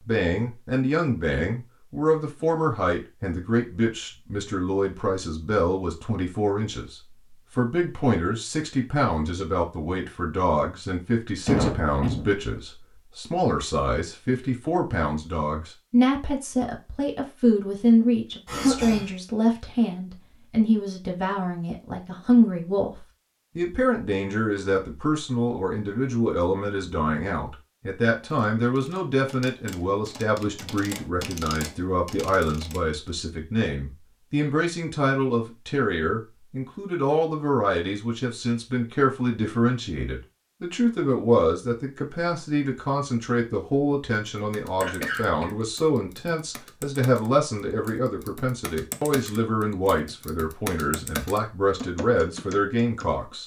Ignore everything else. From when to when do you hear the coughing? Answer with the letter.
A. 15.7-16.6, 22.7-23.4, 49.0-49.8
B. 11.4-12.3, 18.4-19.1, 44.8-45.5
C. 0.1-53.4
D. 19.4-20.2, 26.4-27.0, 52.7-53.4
B.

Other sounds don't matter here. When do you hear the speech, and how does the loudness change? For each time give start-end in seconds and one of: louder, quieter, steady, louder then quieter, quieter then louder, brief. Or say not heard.
0.1-53.4 steady.